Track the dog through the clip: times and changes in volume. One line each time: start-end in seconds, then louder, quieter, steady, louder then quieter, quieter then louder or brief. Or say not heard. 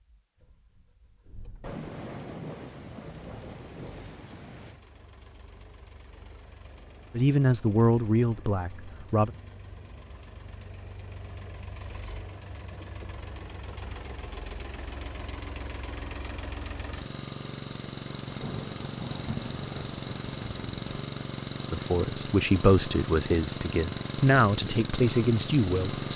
not heard.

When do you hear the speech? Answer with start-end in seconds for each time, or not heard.
7.2-9.3, 21.7-26.1.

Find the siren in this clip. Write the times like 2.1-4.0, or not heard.
not heard.